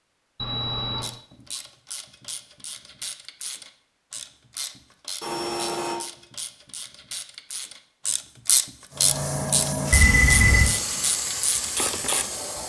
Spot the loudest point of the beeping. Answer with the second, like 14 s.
10 s.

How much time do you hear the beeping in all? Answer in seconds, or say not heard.
2 s.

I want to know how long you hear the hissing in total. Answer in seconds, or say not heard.
4 s.